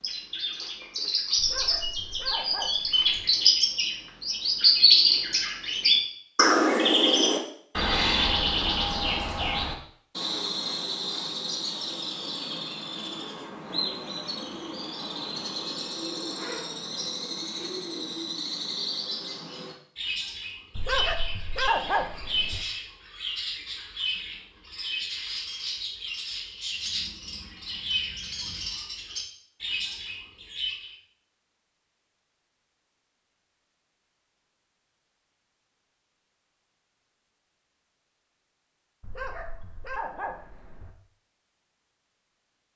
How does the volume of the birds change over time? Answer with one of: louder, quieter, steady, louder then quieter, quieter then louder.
quieter.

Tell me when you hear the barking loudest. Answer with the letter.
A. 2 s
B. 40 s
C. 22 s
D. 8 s
C.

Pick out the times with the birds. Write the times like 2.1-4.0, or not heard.
0.0-30.9.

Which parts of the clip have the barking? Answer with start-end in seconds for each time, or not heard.
1.4-3.2, 20.8-22.6, 39.0-40.9.